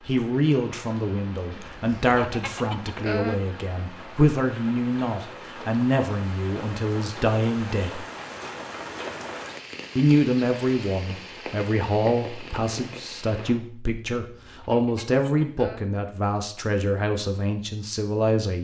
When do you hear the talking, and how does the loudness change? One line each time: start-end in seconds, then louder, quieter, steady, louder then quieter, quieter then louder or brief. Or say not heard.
0.1-8.1 steady
9.9-18.6 steady.